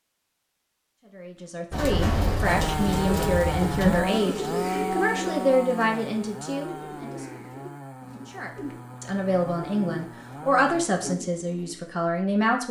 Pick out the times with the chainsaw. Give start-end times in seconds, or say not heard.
2.4-11.2.